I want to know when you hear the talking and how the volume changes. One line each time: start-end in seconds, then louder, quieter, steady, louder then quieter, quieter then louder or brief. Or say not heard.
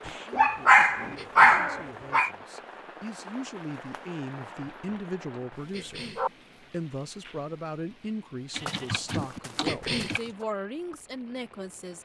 0.0-12.0 louder.